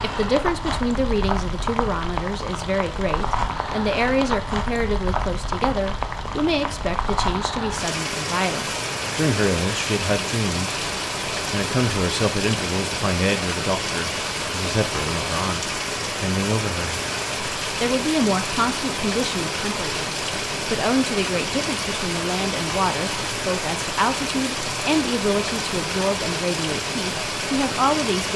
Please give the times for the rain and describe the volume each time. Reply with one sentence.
You can hear the rain from 0.0 to 28.3 s, at a steady volume.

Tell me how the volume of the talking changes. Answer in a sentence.
The volume of the talking stays about the same.